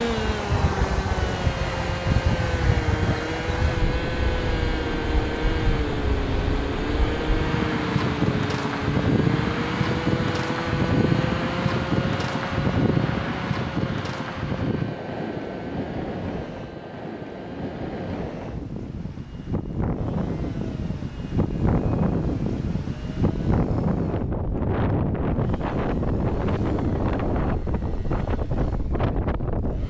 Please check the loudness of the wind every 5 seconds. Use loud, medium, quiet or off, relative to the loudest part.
loud, loud, loud, medium, loud, loud.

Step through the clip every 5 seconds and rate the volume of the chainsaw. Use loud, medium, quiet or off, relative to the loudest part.
loud, loud, loud, quiet, quiet, quiet.